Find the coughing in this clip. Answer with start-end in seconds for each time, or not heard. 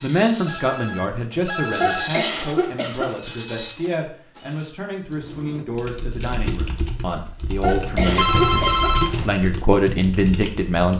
1.8-3.1, 7.6-8.9.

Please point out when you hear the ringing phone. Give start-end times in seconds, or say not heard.
0.5-2.1, 8.1-9.4.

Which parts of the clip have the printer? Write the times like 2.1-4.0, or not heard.
0.0-4.7.